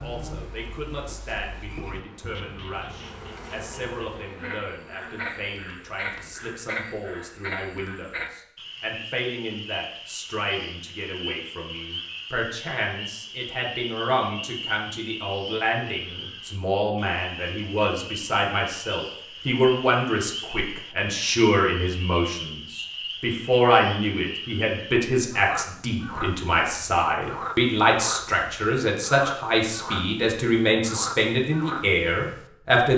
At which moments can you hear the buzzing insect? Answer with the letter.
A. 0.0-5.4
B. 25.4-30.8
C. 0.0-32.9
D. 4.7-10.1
A.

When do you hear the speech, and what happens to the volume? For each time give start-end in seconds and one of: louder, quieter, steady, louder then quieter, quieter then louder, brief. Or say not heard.
0.0-32.9 louder.